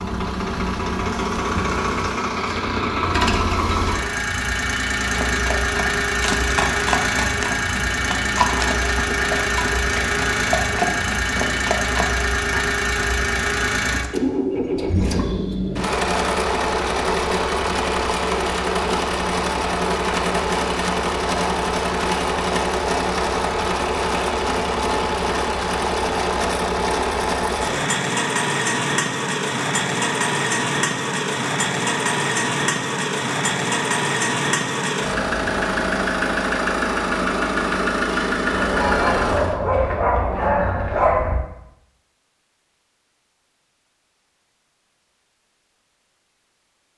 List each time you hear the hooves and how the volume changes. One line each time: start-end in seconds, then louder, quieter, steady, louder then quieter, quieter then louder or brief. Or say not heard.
5.1-12.6 steady.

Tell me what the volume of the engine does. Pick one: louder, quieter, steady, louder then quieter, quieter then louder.
steady.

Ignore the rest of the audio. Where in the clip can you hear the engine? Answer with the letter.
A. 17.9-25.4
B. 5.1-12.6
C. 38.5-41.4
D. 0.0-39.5
D.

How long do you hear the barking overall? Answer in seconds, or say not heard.
3 s.